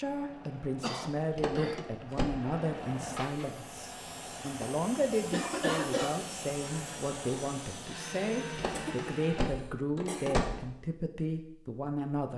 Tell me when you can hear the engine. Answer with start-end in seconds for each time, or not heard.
0.0-9.5.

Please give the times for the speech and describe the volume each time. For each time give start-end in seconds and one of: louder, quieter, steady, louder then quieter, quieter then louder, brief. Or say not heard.
0.0-12.3 steady.